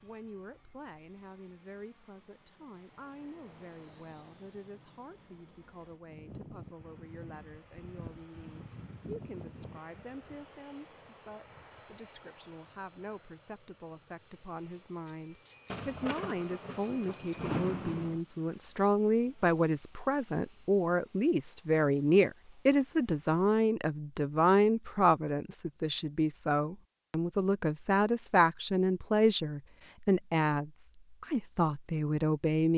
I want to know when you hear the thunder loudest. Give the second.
18 s.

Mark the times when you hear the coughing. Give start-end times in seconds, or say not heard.
not heard.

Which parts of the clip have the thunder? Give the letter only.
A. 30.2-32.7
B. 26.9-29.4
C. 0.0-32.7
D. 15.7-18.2
D.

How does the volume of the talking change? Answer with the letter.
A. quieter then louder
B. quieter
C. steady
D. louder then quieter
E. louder
E.